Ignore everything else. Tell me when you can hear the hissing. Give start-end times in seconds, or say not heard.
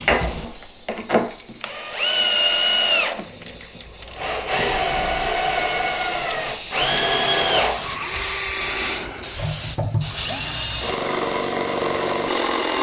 0.0-12.7.